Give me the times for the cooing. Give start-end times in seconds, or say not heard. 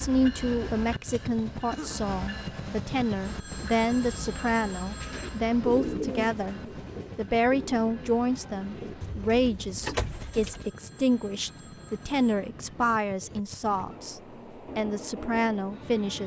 4.9-10.7.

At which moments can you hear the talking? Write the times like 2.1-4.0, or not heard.
0.0-16.2.